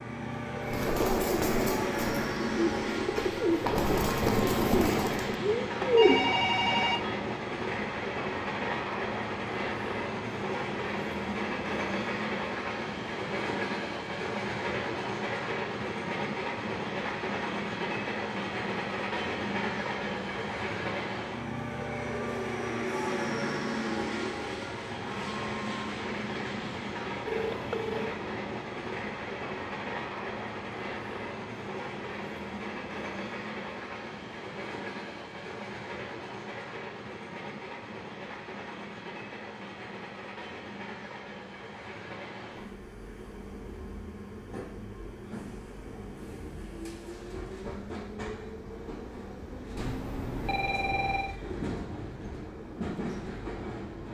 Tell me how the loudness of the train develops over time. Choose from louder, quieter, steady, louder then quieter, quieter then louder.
quieter.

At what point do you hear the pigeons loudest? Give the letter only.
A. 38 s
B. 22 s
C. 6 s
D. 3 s
C.